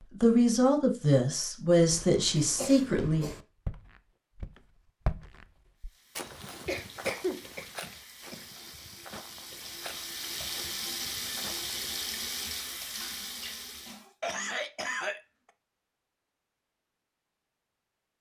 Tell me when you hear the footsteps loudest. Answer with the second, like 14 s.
5 s.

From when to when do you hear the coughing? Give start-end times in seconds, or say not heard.
1.9-3.5, 6.7-8.4, 14.2-15.2.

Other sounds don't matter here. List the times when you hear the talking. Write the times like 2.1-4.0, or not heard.
0.2-3.3.